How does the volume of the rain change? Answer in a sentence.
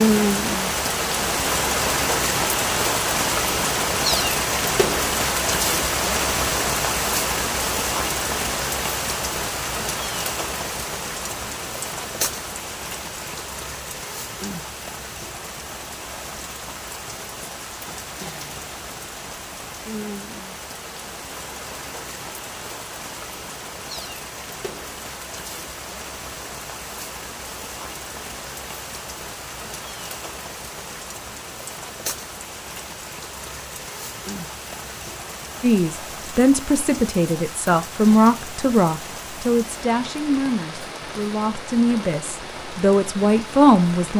The loudness of the rain goes down.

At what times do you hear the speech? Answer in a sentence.
The speech can be heard from 35.6 to 44.1 s.